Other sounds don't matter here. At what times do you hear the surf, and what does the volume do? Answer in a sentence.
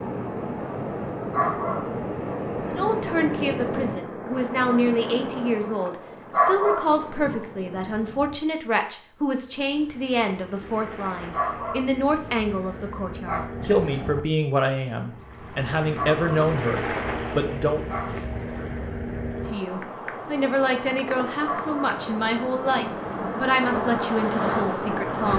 The surf can be heard from 0.0 to 25.3 s, getting quieter then louder.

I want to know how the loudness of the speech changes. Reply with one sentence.
The volume of the speech stays about the same.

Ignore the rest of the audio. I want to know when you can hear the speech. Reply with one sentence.
The speech can be heard from 2.7 to 17.8 s and from 19.5 to 25.3 s.